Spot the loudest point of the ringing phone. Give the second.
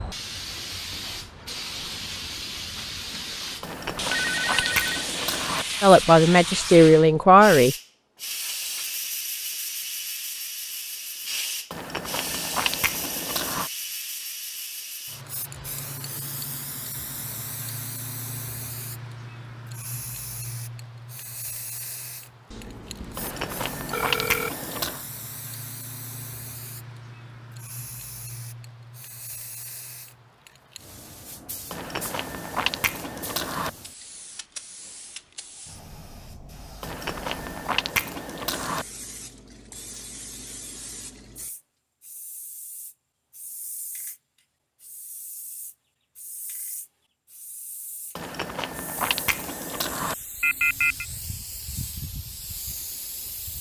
51 s.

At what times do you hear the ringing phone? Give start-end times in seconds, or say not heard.
4.1-5.0, 22.5-24.5, 50.4-51.0.